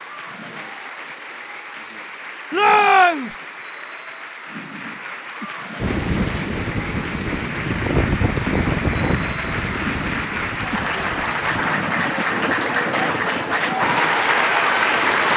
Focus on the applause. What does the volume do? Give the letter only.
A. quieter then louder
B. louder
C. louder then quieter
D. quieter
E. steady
B.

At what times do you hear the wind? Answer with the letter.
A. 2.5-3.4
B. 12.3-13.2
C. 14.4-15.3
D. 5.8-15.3
D.